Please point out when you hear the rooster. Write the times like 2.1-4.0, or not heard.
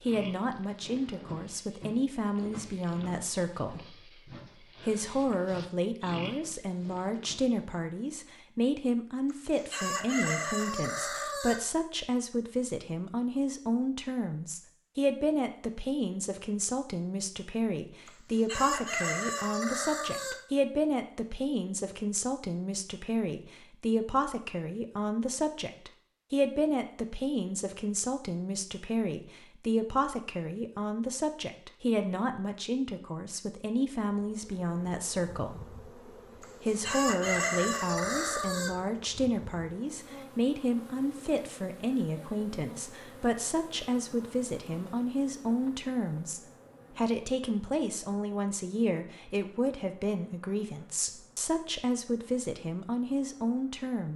9.3-11.6, 18.1-20.4, 36.4-38.8.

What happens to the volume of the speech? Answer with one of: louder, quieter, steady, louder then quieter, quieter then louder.
steady.